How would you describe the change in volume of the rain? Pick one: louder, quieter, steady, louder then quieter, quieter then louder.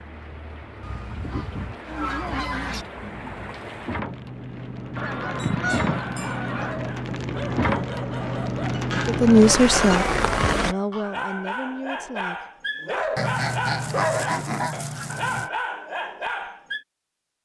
louder.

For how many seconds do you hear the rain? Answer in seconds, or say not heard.
11 s.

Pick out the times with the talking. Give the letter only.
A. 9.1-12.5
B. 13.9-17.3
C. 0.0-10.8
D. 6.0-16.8
A.